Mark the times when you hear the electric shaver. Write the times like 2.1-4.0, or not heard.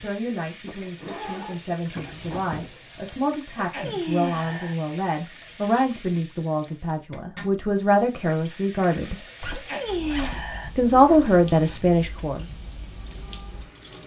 not heard.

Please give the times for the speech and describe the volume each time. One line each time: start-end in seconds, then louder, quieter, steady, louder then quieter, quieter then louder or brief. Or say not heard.
0.0-9.2 louder
10.3-12.4 brief.